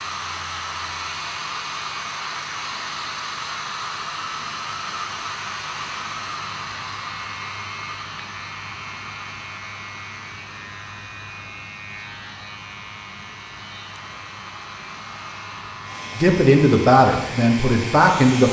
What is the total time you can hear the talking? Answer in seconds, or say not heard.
2 s.